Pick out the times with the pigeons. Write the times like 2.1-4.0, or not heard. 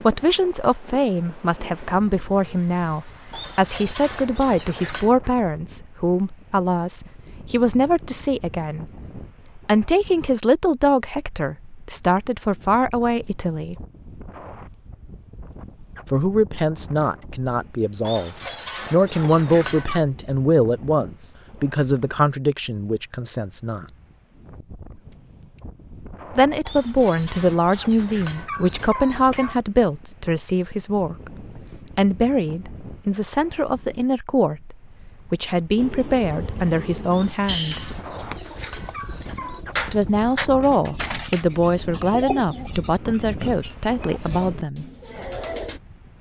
35.8-45.8.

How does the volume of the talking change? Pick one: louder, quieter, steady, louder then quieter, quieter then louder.
steady.